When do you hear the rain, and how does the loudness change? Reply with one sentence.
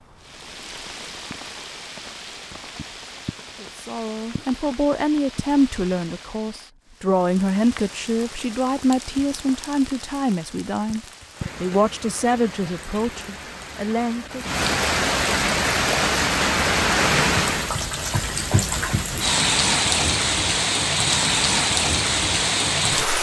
The rain can be heard from 0.0 to 23.1 s, getting louder.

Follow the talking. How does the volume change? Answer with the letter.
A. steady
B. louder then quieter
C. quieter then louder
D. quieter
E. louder
A.